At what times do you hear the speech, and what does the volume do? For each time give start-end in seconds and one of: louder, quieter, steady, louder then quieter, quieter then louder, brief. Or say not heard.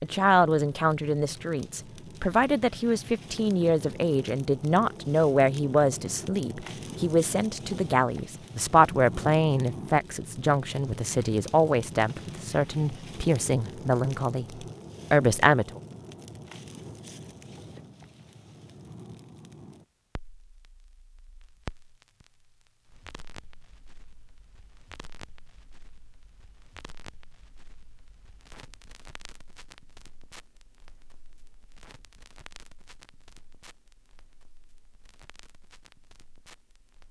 0.0-15.8 steady.